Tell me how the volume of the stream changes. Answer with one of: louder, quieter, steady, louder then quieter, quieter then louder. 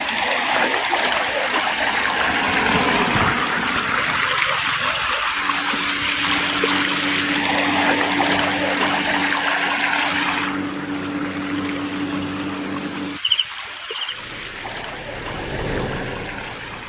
quieter.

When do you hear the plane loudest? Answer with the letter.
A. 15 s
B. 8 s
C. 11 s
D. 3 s
D.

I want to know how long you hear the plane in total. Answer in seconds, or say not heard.
7 s.